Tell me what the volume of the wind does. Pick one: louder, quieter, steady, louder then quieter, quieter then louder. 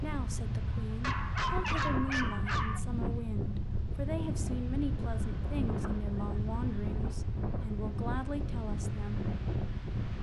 steady.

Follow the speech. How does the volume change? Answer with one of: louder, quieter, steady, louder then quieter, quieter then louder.
steady.